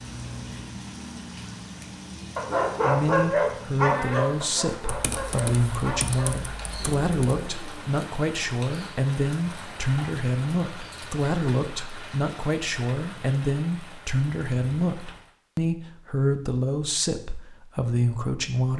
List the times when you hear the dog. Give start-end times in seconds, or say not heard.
2.4-7.9.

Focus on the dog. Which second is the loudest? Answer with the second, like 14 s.
3 s.